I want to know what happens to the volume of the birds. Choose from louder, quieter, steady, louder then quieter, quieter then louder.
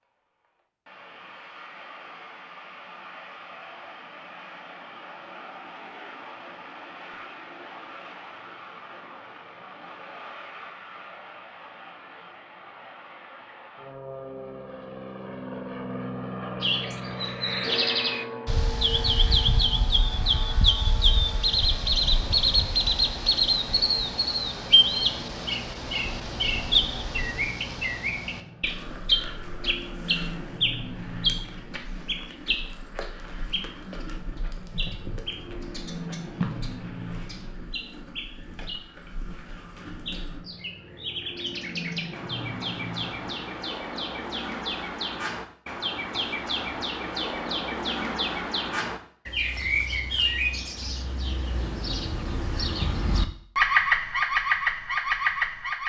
quieter then louder.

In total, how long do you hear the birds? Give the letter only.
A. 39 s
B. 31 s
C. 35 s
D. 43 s
A.